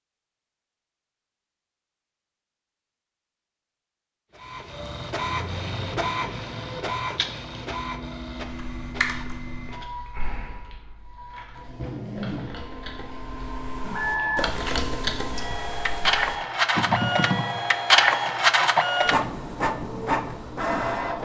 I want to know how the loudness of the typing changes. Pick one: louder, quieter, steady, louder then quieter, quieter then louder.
quieter then louder.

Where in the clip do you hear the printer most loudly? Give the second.
18 s.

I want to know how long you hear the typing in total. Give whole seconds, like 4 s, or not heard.
9 s.